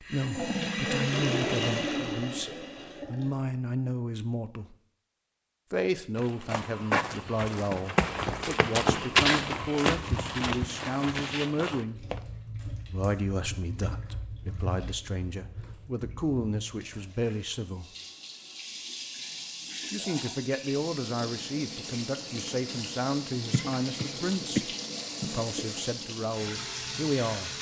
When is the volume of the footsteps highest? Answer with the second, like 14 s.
9 s.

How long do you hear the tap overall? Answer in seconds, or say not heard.
19 s.